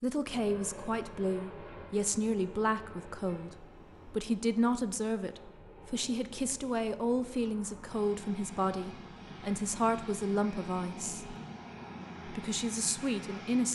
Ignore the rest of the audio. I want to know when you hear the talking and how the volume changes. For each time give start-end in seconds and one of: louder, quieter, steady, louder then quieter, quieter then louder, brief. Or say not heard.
0.0-11.3 steady
12.2-13.7 brief.